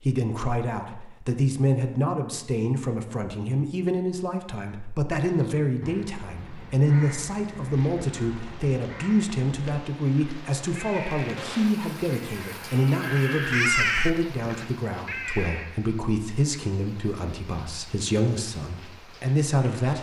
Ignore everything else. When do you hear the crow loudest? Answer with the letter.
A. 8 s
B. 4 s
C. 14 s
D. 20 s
C.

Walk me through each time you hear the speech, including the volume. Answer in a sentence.
The speech can be heard from 0.0 to 19.9 s, at a steady volume.